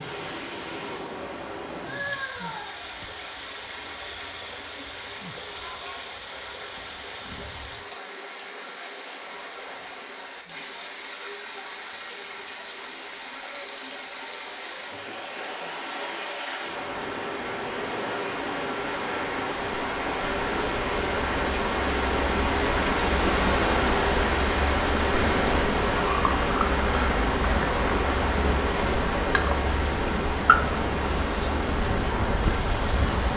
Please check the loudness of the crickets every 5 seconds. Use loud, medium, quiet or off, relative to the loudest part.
quiet, quiet, quiet, quiet, loud, loud, loud.